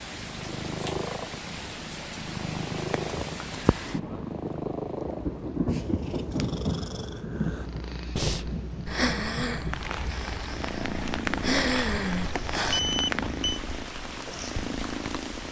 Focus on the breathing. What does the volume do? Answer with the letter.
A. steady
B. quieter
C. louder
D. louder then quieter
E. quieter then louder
E.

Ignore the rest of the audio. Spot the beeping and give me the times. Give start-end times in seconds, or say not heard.
12.7-13.6.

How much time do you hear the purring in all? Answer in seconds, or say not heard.
15 s.